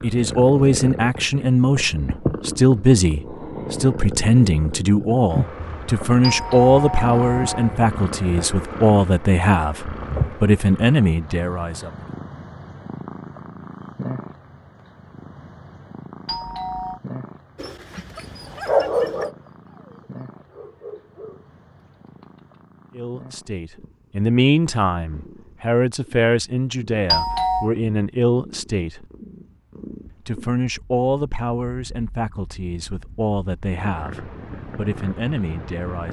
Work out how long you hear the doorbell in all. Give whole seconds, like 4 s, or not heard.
3 s.